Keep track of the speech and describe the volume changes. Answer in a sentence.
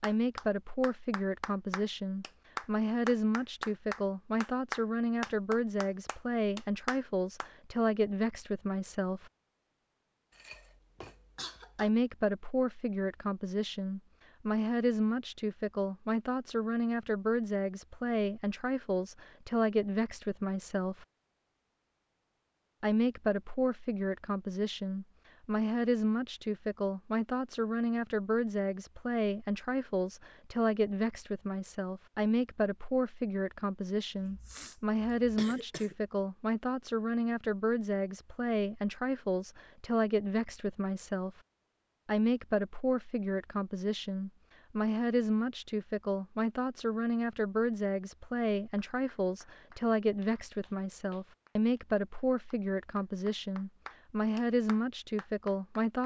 The loudness of the speech stays about the same.